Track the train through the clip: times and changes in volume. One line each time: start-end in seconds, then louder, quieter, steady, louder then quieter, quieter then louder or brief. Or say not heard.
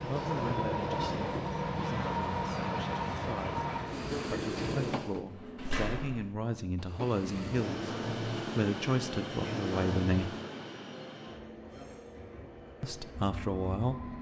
0.0-5.2 steady
6.8-14.1 quieter.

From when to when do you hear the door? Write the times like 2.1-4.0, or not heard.
5.0-6.3.